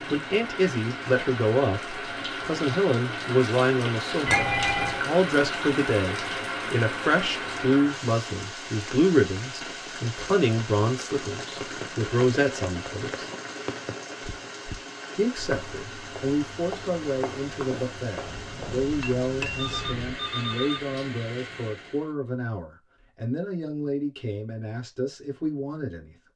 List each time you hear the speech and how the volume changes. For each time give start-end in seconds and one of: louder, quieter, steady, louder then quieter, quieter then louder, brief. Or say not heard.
0.1-13.3 steady
15.2-26.1 steady.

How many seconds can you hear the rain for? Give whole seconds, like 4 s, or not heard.
22 s.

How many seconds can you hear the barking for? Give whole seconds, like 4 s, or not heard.
not heard.